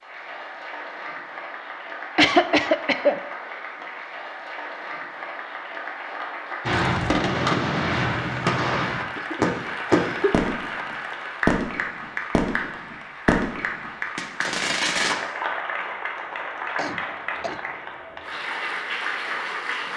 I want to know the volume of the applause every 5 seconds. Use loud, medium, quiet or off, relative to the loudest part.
medium, loud, loud, loud.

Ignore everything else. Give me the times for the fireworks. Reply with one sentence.
You can hear the fireworks from 6.7 to 15.2 s.